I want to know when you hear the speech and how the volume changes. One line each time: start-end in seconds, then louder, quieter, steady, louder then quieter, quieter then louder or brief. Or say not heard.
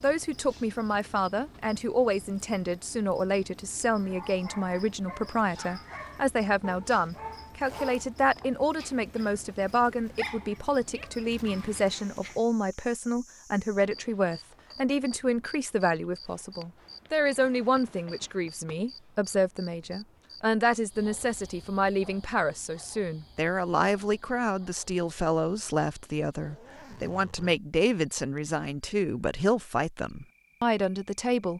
0.0-31.5 steady.